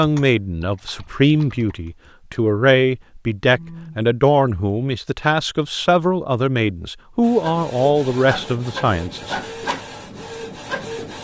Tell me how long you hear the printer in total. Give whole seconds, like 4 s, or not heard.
4 s.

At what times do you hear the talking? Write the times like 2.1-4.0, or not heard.
0.0-9.5.